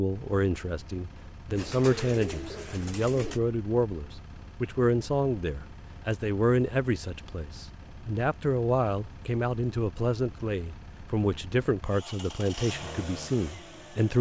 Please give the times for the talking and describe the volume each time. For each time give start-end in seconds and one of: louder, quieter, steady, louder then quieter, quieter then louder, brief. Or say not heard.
0.0-14.1 steady.